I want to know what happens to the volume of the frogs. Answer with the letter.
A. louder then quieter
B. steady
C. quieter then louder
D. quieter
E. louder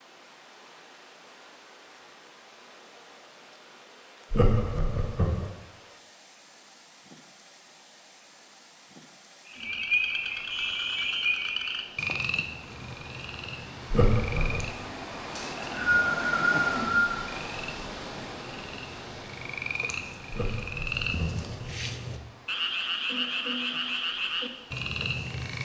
C.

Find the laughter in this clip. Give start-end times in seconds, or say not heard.
4.3-5.5, 13.9-14.7, 20.3-21.5.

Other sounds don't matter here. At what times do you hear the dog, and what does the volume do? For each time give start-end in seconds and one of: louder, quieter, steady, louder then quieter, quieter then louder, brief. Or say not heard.
not heard.